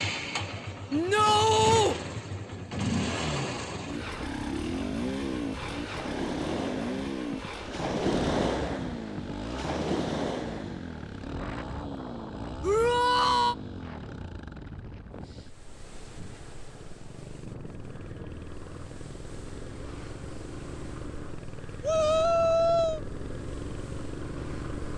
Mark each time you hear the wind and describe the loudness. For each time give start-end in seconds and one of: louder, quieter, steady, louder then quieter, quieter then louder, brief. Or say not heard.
0.1-24.9 louder then quieter.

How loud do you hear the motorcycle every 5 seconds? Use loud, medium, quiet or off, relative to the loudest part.
loud, loud, medium, quiet, medium.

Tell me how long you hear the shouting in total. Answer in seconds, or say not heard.
3 s.